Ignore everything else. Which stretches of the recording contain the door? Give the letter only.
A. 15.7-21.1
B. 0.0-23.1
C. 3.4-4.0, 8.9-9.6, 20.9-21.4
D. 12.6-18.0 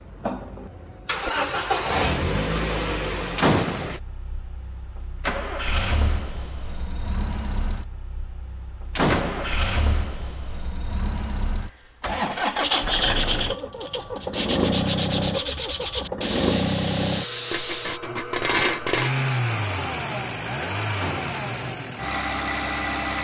C.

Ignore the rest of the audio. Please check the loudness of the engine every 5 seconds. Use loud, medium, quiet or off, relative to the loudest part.
loud, medium, loud, loud, loud.